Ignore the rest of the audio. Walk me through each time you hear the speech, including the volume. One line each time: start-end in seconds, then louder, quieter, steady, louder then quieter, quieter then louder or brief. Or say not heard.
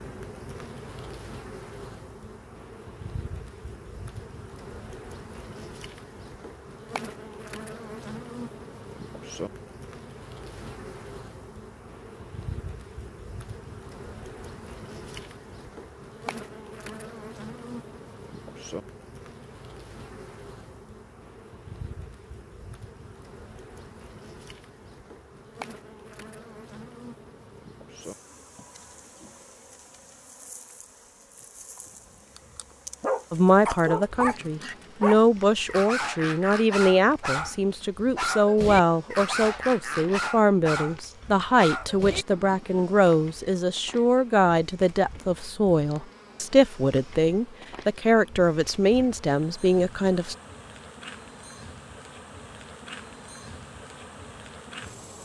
33.3-50.4 steady.